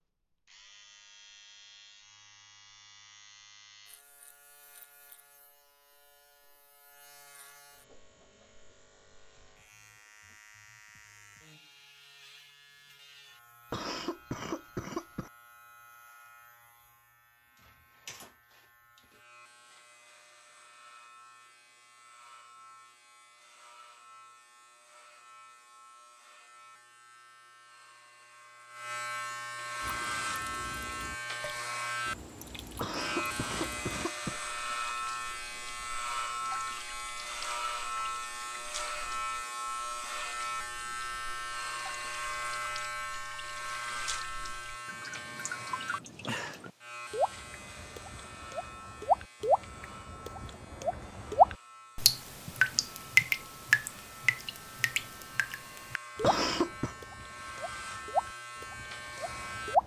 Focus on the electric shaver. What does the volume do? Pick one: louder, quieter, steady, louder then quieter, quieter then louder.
louder then quieter.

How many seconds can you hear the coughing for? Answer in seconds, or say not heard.
4 s.